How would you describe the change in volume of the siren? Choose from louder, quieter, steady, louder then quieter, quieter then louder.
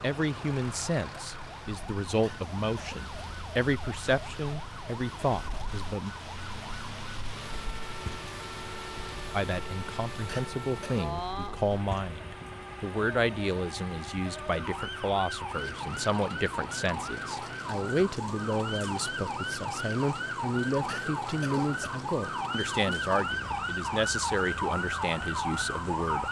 louder.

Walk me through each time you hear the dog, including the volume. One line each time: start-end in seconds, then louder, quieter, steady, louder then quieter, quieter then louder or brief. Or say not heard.
not heard.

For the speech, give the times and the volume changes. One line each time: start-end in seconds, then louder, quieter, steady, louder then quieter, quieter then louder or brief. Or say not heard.
0.0-6.1 steady
9.3-26.2 steady.